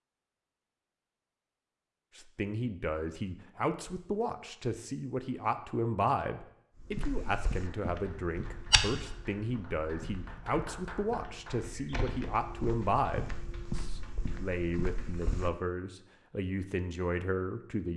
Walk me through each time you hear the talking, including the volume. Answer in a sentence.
The talking can be heard from 2.1 to 17.9 s, at a steady volume.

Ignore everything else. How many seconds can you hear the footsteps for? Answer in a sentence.
The footsteps can be heard for 9 seconds in total.